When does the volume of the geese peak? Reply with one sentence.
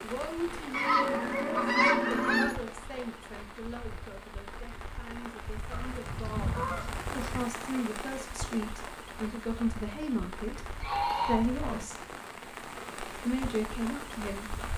The volume of the geese peaks at 2 seconds.